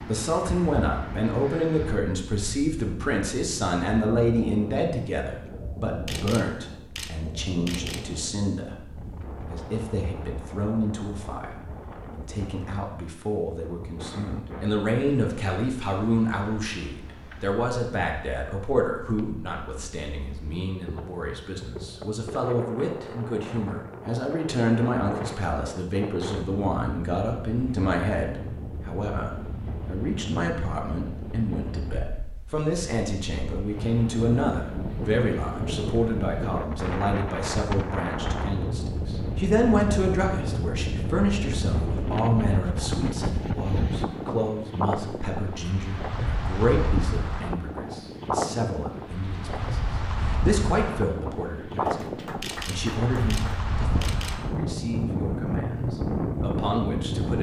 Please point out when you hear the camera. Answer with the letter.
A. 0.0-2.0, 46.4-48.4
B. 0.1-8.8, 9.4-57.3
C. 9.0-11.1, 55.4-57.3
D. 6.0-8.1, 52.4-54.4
D.